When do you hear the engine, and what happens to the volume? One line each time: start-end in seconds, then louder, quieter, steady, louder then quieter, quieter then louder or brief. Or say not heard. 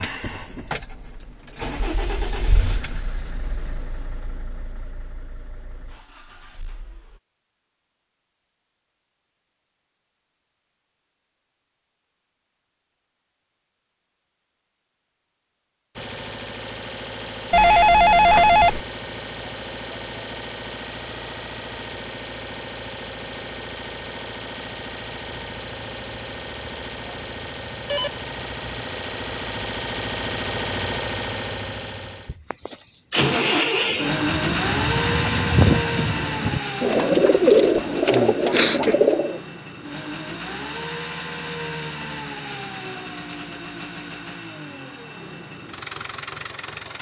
0.0-7.2 quieter
15.9-46.9 louder then quieter.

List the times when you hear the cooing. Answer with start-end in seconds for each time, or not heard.
33.8-39.4.